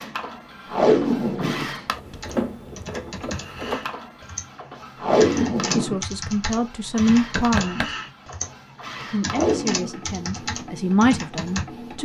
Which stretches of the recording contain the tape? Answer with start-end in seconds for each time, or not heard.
0.7-2.1, 5.0-6.0, 9.2-9.9.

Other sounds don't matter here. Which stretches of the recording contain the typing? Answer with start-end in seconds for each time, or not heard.
2.1-11.7.